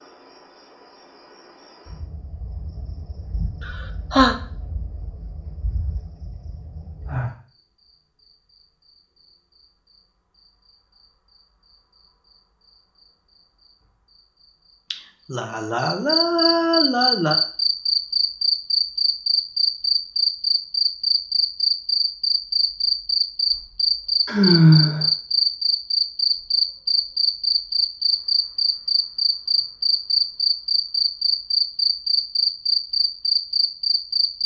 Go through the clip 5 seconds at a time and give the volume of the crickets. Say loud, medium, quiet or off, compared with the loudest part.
quiet, quiet, quiet, loud, loud, loud, loud.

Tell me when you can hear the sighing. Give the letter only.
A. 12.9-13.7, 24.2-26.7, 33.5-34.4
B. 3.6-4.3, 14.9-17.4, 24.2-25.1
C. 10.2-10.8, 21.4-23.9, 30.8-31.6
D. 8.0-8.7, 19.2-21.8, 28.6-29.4
B.